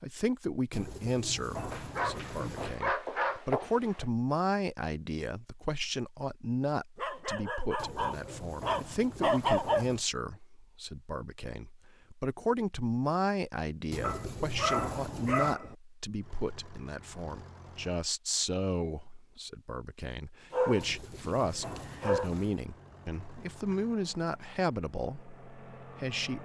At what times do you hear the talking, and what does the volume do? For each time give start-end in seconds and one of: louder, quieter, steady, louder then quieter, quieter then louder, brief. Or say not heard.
0.0-26.4 steady.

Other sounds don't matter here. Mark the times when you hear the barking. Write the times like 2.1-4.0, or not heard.
1.7-4.0, 7.0-9.8, 14.0-15.8, 20.5-22.3.